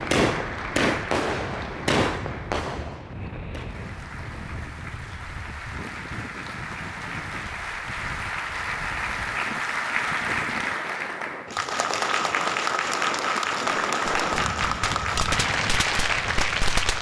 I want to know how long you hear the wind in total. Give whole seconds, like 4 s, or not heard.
17 s.